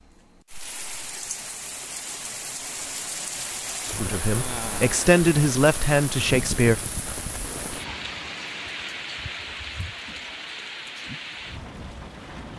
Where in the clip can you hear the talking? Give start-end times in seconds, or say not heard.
4.0-6.8.